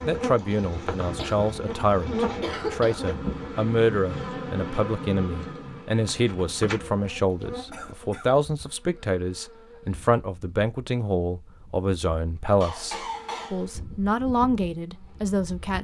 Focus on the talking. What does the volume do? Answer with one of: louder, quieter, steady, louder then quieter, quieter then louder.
steady.